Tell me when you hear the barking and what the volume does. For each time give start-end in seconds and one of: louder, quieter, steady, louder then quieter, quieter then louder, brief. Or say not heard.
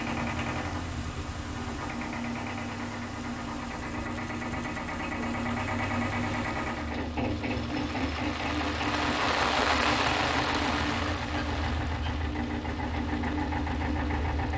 not heard.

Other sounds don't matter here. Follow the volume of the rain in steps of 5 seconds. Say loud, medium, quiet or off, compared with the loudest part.
quiet, loud, loud.